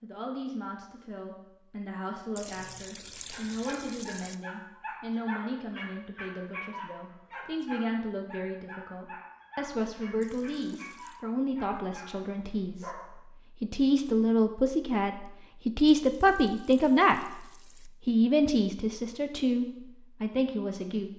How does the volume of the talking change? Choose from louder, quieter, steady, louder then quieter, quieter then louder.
louder.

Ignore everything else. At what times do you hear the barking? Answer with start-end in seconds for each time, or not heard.
3.3-13.2.